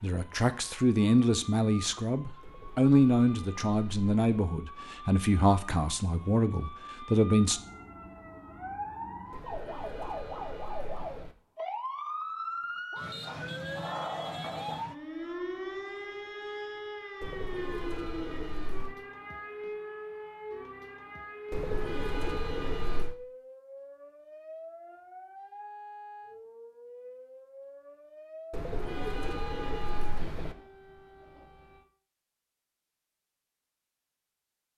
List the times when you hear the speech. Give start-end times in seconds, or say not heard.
0.0-7.6.